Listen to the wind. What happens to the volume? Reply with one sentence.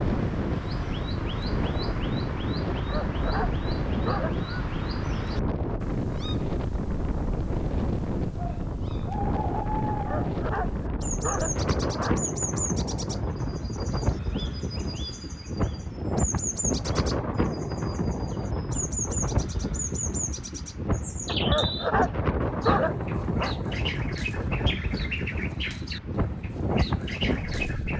The loudness of the wind stays about the same.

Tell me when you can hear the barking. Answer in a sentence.
The barking can be heard from 2.7 to 4.3 s, from 9.9 to 12.2 s and from 21.2 to 23.6 s.